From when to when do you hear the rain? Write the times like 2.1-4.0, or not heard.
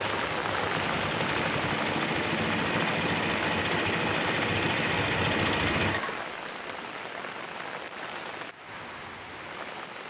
0.0-10.0.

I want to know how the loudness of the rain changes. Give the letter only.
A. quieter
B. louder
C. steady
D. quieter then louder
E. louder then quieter
A.